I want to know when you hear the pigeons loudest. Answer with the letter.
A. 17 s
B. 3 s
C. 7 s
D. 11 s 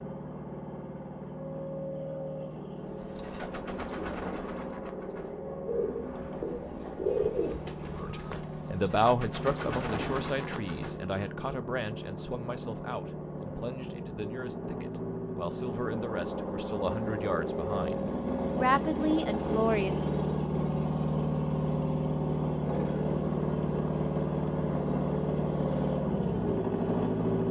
C.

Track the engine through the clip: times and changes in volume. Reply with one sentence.
The engine can be heard from 0.0 to 27.4 s, getting louder.